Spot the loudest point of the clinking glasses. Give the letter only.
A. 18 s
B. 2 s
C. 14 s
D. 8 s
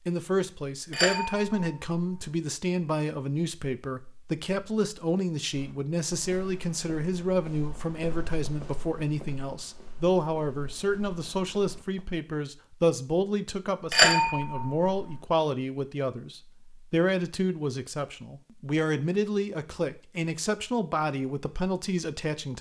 C.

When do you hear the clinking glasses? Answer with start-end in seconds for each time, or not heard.
0.9-2.3, 13.9-15.2.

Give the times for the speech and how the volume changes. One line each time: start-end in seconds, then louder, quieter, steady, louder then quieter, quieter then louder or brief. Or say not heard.
0.1-22.5 steady.